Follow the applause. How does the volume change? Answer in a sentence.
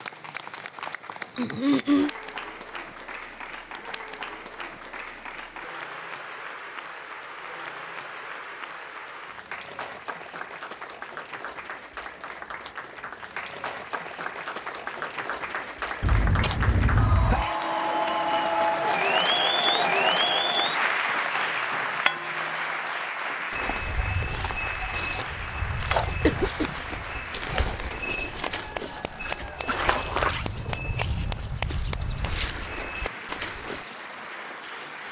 The loudness of the applause goes up, then down.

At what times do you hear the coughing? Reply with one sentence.
The coughing can be heard from 1.4 to 2.1 s, from 16.0 to 17.6 s and from 26.2 to 26.8 s.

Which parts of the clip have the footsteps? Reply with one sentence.
You can hear the footsteps from 23.5 to 33.9 s.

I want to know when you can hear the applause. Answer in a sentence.
The applause can be heard from 0.0 to 35.0 s.